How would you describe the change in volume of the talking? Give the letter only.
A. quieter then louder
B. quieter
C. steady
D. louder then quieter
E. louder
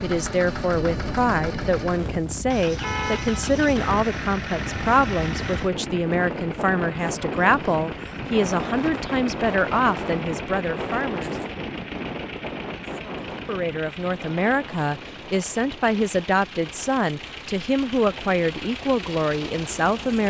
C.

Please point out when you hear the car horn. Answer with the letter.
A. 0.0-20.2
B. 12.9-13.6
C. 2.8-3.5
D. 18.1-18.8
C.